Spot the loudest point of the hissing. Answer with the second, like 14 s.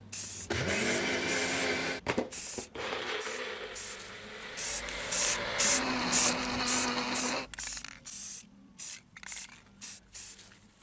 6 s.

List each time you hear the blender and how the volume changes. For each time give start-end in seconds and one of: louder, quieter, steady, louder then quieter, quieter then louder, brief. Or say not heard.
0.0-7.5 quieter then louder.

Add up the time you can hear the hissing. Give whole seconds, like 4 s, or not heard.
11 s.